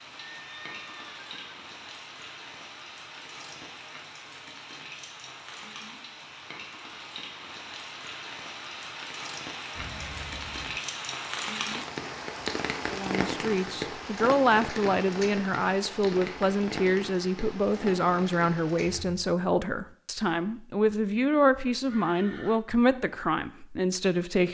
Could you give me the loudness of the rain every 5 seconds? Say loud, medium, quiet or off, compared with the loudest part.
medium, medium, loud, medium, off.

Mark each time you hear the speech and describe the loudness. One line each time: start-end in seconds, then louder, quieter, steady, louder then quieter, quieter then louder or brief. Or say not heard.
12.9-24.4 steady.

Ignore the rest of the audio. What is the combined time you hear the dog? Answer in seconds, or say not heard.
not heard.